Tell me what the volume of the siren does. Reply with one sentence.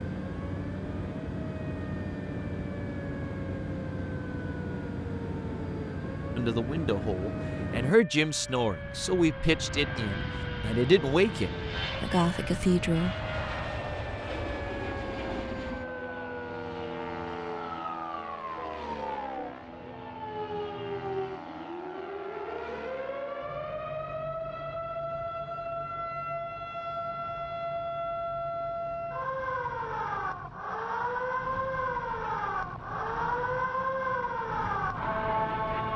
The volume of the siren goes up.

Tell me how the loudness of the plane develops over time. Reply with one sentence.
The loudness of the plane goes down.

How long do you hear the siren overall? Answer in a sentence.
You can hear the siren for 36 seconds altogether.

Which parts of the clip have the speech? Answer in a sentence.
You can hear the speech from 6.3 to 13.2 s.